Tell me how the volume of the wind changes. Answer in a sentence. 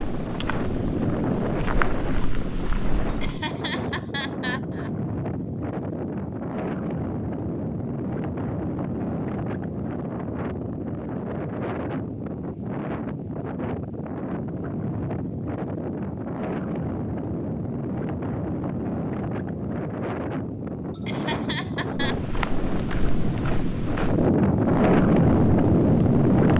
The loudness of the wind goes up.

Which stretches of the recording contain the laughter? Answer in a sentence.
The laughter can be heard from 3.1 to 4.9 s and from 20.9 to 22.1 s.